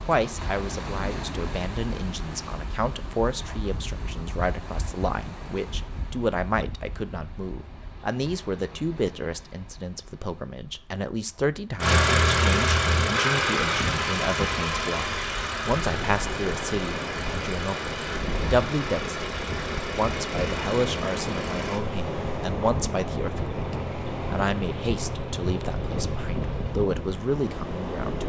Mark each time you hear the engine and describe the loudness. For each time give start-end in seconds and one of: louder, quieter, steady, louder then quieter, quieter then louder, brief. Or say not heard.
11.8-26.8 quieter.